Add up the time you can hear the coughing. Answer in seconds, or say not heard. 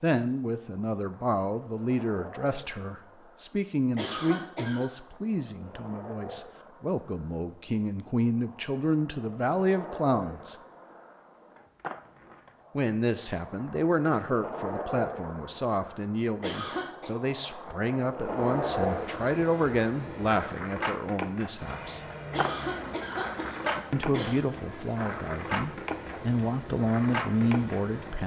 4 s.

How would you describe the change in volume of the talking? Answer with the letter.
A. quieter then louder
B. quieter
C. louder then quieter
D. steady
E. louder
D.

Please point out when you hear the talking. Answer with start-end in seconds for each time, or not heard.
0.0-10.6, 12.8-22.0, 23.9-28.2.